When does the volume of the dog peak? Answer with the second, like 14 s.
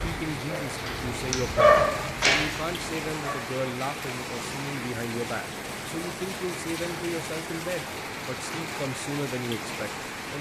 2 s.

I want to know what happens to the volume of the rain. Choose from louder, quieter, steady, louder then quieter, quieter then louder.
steady.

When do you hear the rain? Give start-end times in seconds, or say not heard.
0.0-10.3.